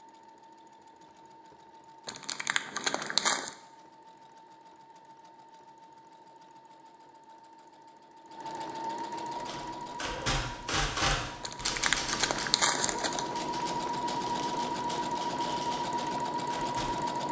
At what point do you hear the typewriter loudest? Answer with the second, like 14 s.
11 s.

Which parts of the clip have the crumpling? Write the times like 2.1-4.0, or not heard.
2.0-3.5, 11.4-13.3.